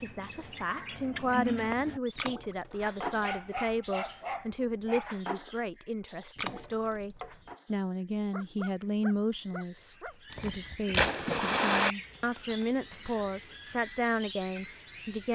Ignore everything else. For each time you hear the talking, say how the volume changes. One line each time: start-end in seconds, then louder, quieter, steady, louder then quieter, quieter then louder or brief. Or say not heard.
0.0-15.3 steady.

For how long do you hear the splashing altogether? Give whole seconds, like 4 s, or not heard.
4 s.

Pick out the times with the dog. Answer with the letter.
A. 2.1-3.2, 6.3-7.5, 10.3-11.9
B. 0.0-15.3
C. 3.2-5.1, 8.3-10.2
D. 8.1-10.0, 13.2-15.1
C.